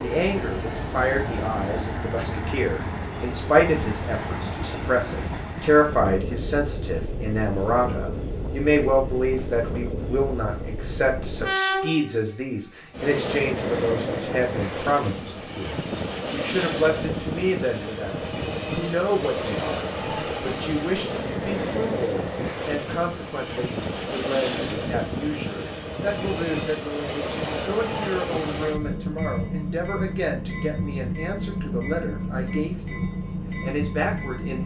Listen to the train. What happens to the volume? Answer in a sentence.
The volume of the train stays about the same.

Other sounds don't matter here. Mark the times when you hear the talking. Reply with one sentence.
You can hear the talking from 0.0 to 34.6 s.